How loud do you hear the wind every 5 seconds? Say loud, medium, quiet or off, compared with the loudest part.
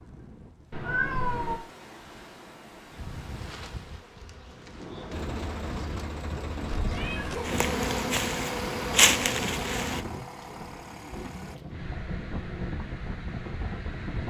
medium, loud, loud.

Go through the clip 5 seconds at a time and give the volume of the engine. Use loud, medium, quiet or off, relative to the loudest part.
off, loud, medium.